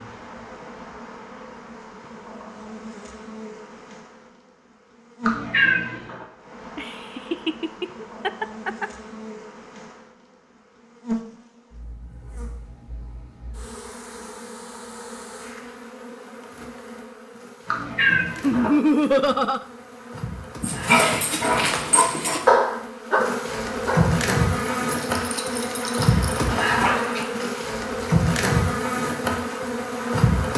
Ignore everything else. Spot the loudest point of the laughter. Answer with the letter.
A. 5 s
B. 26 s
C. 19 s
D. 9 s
C.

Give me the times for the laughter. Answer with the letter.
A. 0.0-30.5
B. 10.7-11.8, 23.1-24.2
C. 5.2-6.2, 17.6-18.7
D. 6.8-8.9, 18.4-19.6
D.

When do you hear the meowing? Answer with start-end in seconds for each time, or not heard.
5.2-6.2, 17.6-18.7.